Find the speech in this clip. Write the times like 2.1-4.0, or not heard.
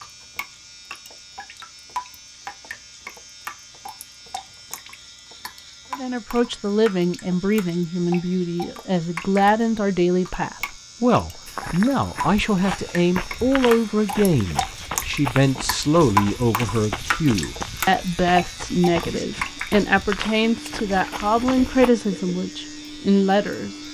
6.0-23.8.